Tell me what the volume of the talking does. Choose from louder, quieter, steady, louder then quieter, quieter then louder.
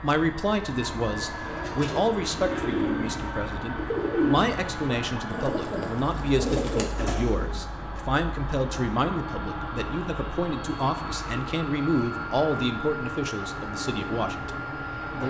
steady.